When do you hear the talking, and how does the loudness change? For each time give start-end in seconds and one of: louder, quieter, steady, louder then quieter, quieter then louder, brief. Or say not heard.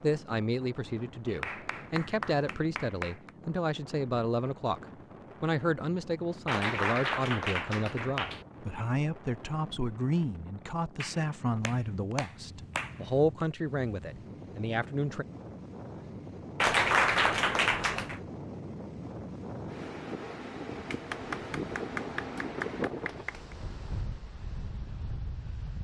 0.0-15.2 steady.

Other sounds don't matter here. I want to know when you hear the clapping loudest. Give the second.
17 s.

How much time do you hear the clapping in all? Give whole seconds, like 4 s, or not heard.
10 s.